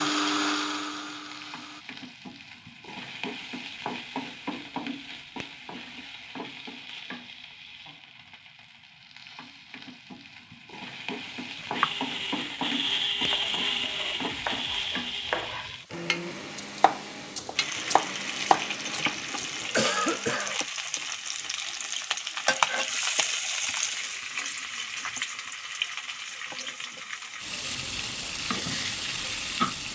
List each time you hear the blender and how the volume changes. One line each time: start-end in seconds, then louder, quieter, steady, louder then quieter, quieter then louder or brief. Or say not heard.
0.0-1.9 brief
11.7-20.6 quieter.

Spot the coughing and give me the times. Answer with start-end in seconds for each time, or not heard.
19.8-20.6.